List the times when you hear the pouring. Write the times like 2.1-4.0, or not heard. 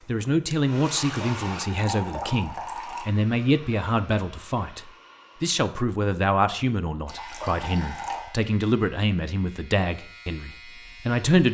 1.1-3.0, 7.0-8.3.